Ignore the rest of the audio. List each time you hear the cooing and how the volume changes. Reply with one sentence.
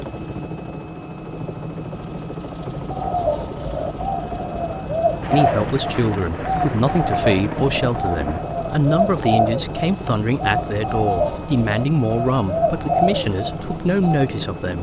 The cooing can be heard from 2.8 to 14.3 s, at a steady volume.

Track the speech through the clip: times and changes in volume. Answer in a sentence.
You can hear the speech from 5.3 to 14.7 s, at a steady volume.